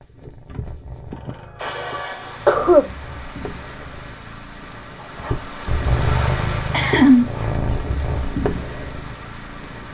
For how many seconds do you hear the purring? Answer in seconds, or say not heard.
10 s.